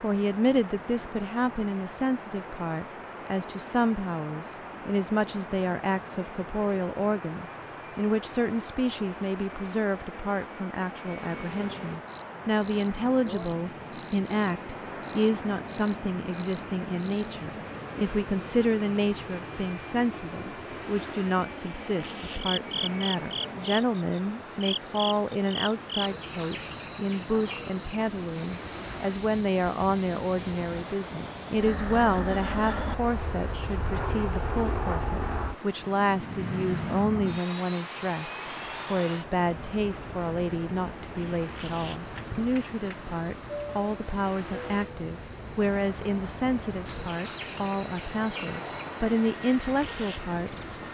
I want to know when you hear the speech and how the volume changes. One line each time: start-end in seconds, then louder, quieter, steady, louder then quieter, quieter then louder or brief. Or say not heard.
0.0-38.3 steady
38.9-50.9 steady.